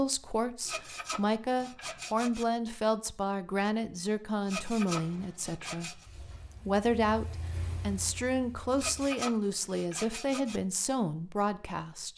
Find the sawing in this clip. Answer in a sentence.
The sawing can be heard from 0.7 to 2.5 s, from 4.5 to 6.0 s and from 8.8 to 10.6 s.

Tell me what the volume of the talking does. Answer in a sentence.
The volume of the talking stays about the same.